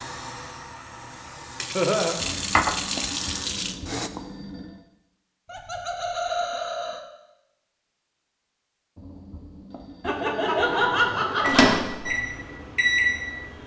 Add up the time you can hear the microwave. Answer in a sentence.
You can hear the microwave for 3 seconds altogether.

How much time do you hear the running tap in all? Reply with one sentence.
You can hear the running tap for 4 seconds altogether.